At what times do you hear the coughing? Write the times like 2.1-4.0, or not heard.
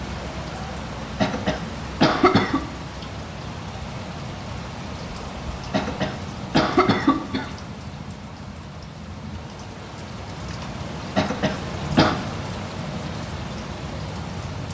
1.2-2.6, 5.7-7.5, 11.2-12.2.